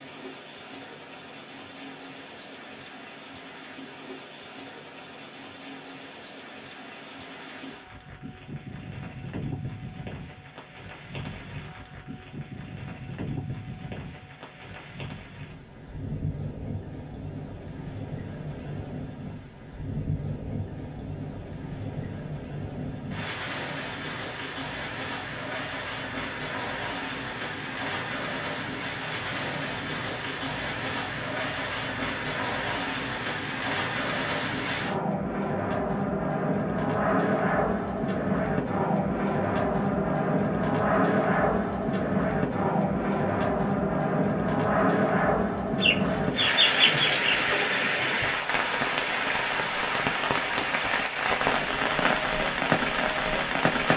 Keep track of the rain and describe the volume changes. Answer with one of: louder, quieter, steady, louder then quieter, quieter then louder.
louder.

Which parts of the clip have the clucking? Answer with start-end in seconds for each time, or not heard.
45.8-47.5.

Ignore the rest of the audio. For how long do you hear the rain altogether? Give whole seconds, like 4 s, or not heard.
54 s.